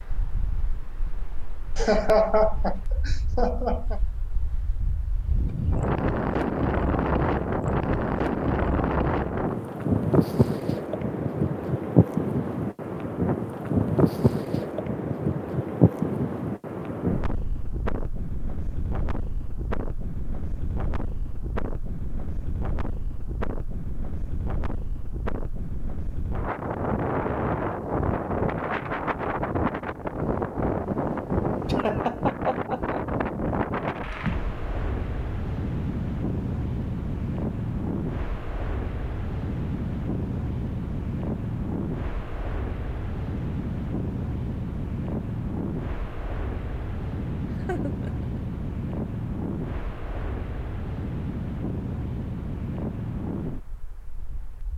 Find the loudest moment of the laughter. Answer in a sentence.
The volume of the laughter peaks at 2 seconds.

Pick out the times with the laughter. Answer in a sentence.
The laughter can be heard from 1.8 to 4.0 s, from 31.6 to 33.0 s and from 47.6 to 48.4 s.